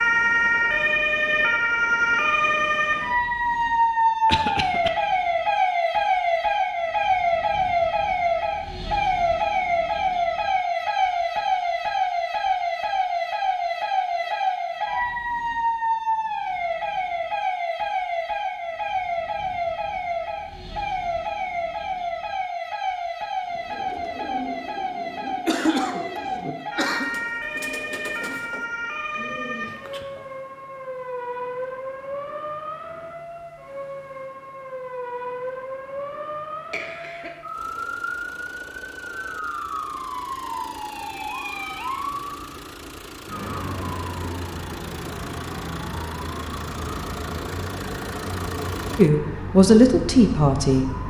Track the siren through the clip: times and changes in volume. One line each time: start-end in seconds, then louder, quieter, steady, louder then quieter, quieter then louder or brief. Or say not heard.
0.0-51.0 quieter.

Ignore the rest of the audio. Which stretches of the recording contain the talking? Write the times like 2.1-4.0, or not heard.
49.0-51.0.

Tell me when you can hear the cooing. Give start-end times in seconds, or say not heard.
23.4-30.2.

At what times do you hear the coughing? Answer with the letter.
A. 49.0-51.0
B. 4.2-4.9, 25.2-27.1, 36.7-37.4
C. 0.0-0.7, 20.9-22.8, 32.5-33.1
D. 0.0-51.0
B.